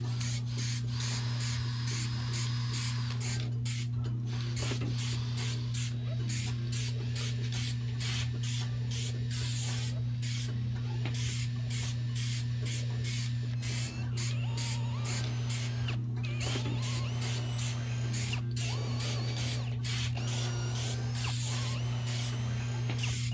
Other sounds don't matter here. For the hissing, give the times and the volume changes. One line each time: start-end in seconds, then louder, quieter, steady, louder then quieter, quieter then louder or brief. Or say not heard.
0.0-23.2 steady.